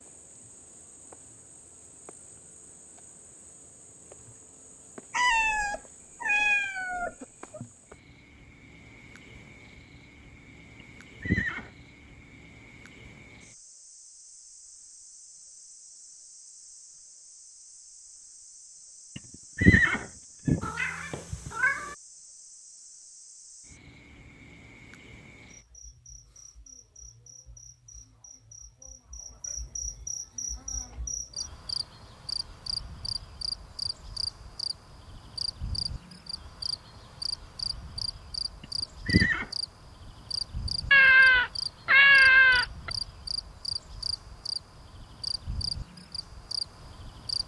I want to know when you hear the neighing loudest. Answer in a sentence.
The loudest moment of the neighing is at 20 seconds.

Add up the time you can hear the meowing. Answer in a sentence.
The meowing can be heard for 6 seconds in total.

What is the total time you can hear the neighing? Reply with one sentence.
You can hear the neighing for 3 seconds altogether.